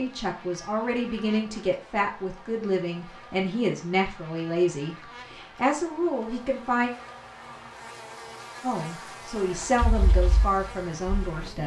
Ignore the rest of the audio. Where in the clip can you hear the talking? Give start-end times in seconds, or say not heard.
0.0-6.9, 8.6-11.6.